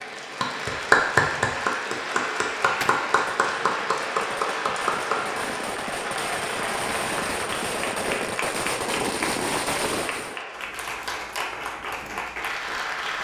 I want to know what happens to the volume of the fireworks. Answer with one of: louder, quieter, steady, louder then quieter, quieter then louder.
louder.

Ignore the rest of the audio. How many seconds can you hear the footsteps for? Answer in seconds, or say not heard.
not heard.